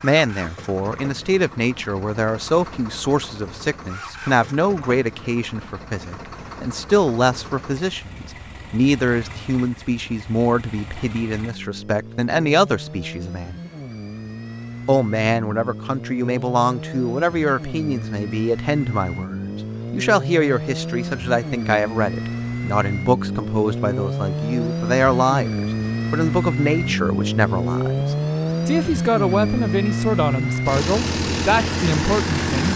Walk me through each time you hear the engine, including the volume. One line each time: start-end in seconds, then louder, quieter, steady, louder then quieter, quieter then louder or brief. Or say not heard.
0.0-32.7 louder.